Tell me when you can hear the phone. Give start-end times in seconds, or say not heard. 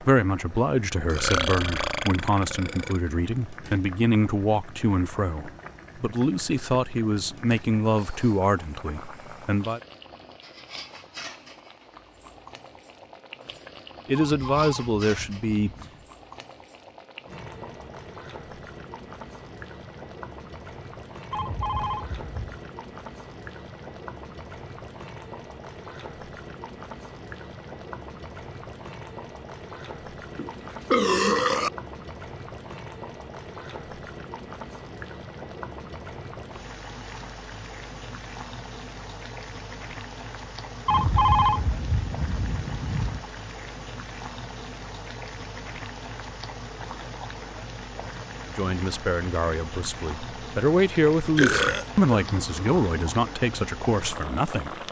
14.2-16.1, 21.3-22.6, 40.9-43.2.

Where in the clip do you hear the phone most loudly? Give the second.
41 s.